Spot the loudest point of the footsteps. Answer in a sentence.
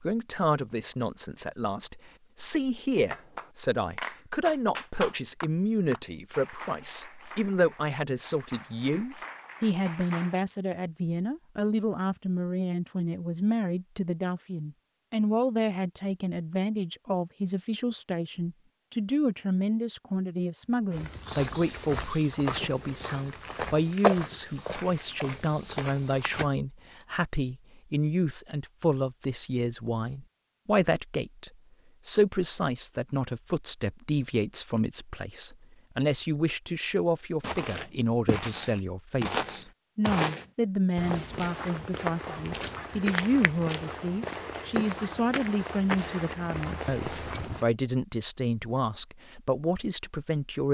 The volume of the footsteps peaks at 24 seconds.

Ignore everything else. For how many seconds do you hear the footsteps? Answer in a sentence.
The footsteps can be heard for 16 seconds in total.